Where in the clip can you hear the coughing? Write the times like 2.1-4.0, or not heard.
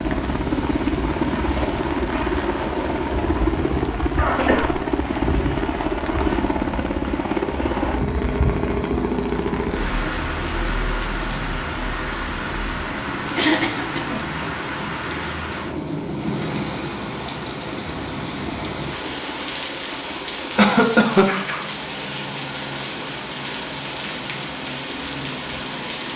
4.2-4.8, 13.3-14.2, 20.6-21.2.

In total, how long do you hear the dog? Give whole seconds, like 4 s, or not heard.
not heard.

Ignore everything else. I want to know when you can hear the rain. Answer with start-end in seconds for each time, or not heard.
0.0-26.1.